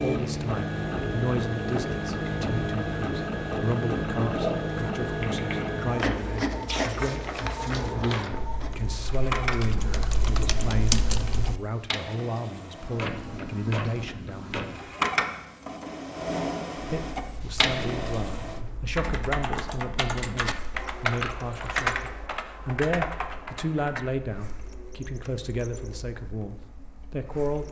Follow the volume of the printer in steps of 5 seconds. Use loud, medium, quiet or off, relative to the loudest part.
loud, loud, medium, loud, quiet, quiet.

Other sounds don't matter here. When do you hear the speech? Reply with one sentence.
The speech can be heard from 0.0 to 14.7 s and from 16.9 to 27.6 s.